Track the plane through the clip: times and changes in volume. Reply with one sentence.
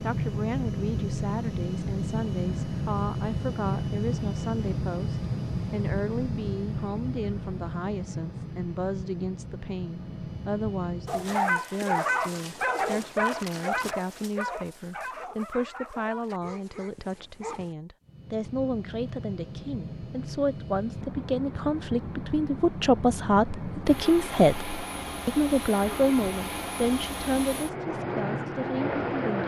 The plane can be heard from 0.0 to 11.4 s, getting quieter; and from 18.0 to 29.4 s, getting louder.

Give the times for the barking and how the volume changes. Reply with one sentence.
The barking can be heard from 11.1 to 17.8 s, getting quieter.